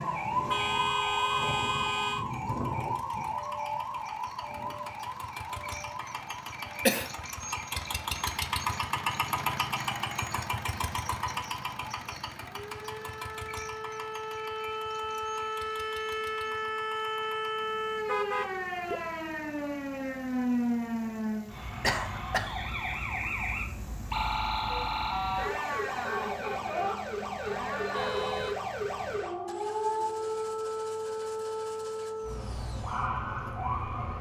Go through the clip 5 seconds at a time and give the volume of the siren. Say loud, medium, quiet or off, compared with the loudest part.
loud, medium, medium, loud, loud, loud, loud.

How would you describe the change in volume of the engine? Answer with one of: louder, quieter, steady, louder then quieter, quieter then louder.
louder then quieter.